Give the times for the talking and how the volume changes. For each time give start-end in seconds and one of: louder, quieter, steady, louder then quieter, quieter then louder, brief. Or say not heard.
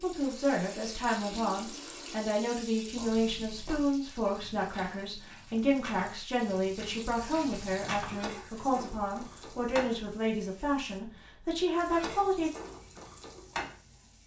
0.0-12.5 steady.